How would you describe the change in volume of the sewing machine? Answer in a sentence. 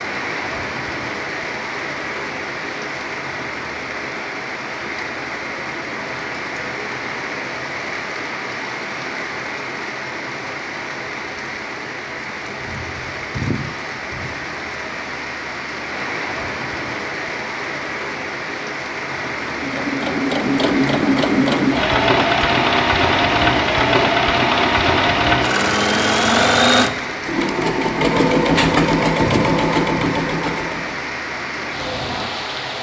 The volume of the sewing machine stays about the same.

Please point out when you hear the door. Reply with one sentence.
The door can't be heard in this clip.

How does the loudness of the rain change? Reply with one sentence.
The volume of the rain stays about the same.